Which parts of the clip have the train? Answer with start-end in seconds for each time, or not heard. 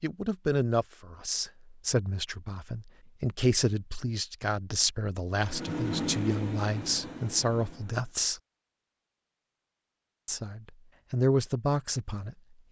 5.5-8.2.